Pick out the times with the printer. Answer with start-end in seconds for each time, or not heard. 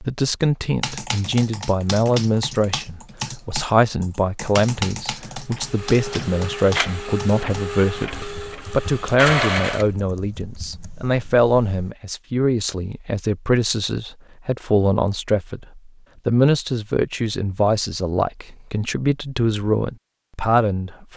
5.5-9.8.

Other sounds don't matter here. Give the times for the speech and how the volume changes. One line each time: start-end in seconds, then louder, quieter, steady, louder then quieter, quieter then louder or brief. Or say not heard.
0.0-21.1 steady.